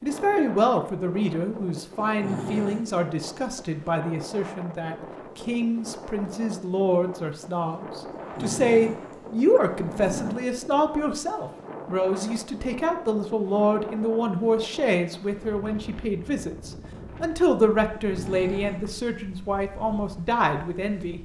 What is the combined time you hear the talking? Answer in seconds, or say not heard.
21 s.